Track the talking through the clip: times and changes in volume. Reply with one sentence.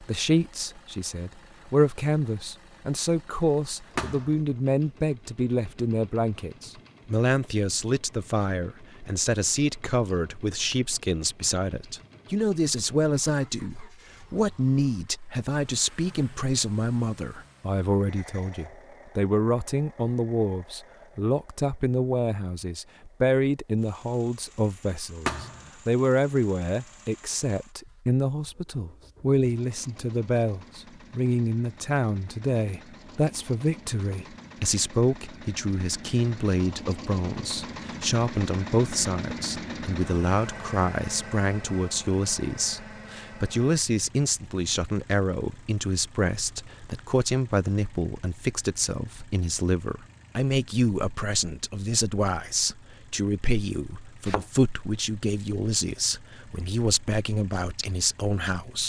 You can hear the talking from 0.0 to 58.8 s, at a steady volume.